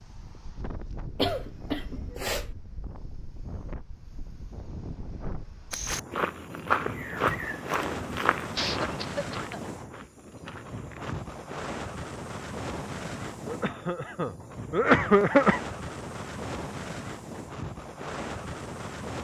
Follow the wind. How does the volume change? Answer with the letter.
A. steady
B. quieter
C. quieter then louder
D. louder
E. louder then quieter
D.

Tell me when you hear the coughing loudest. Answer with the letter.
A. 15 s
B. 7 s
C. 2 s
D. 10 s
A.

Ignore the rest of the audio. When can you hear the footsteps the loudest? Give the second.
7 s.